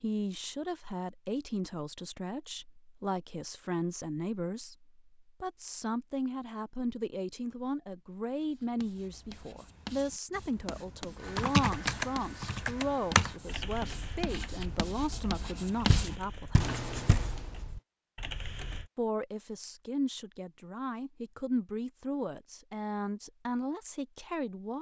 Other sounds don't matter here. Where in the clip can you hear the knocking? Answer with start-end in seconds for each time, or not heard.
15.9-17.4.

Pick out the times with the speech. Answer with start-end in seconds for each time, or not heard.
0.0-16.8, 18.9-24.7.